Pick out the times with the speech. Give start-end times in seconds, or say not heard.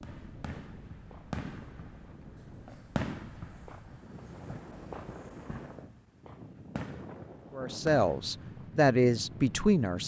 7.5-10.0.